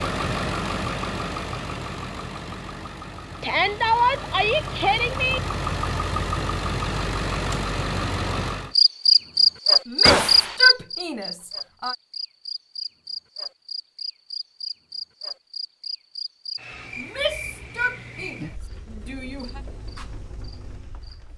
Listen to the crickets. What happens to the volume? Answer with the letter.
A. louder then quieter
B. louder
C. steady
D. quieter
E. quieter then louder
D.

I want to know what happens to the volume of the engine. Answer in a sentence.
The volume of the engine goes down, then up.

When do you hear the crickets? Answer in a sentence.
The crickets can be heard from 8.8 to 21.3 s.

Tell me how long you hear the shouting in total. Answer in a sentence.
You can hear the shouting for 7 seconds altogether.